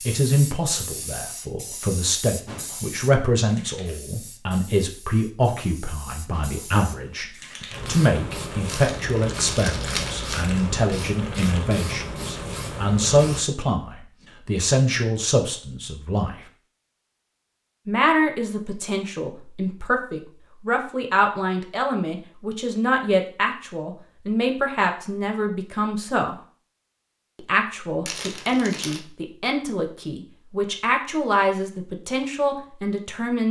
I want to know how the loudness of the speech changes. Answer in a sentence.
The volume of the speech stays about the same.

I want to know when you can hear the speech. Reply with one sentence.
You can hear the speech from 0.1 to 16.4 s, from 17.9 to 26.4 s and from 27.4 to 33.4 s.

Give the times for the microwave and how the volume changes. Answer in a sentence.
The microwave can't be heard in this clip.